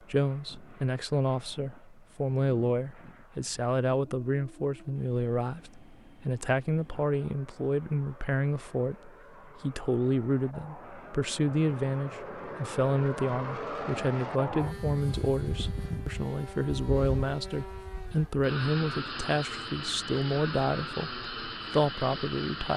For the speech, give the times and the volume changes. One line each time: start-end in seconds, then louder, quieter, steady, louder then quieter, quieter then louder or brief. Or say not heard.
0.1-22.7 steady.